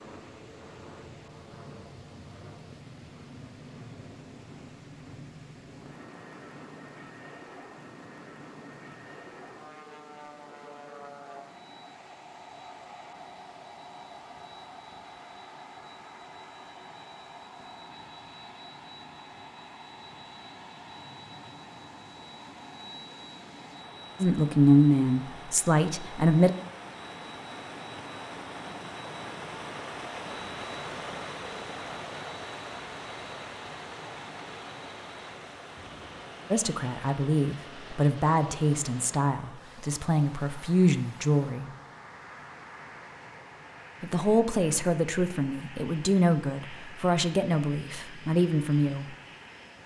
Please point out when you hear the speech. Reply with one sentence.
The speech can be heard from 24.2 to 26.5 s, from 36.5 to 41.7 s and from 44.0 to 49.1 s.